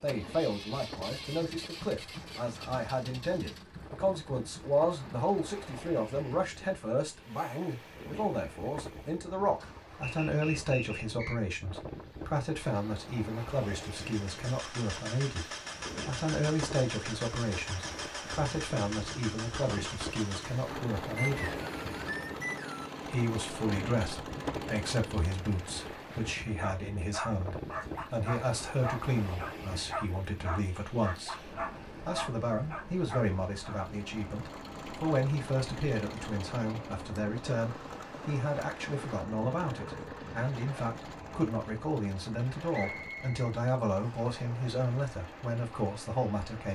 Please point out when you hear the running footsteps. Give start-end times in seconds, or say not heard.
not heard.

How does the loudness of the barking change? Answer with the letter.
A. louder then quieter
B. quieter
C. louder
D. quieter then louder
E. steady
E.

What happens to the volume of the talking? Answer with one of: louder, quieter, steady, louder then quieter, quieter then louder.
steady.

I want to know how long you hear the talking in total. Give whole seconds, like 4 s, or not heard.
45 s.